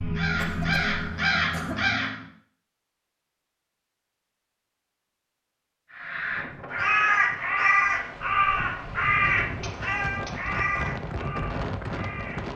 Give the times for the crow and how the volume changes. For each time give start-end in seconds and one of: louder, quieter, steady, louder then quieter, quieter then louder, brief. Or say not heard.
0.0-2.2 brief
5.9-12.5 quieter.